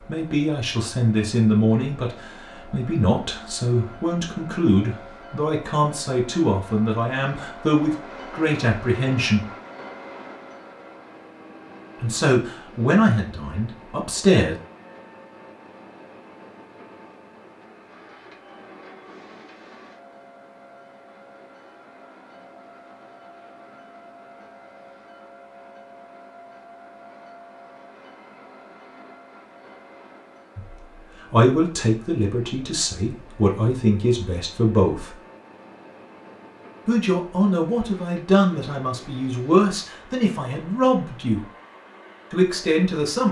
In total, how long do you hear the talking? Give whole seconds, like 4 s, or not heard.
22 s.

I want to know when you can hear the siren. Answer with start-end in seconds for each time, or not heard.
not heard.